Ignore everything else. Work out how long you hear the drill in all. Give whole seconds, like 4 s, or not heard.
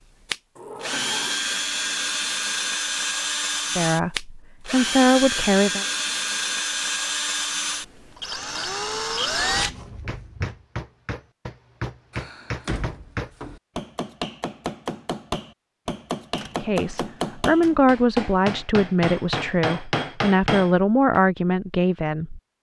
10 s.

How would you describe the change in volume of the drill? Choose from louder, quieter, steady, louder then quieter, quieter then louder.
steady.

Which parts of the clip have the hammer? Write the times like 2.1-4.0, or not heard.
10.1-21.2.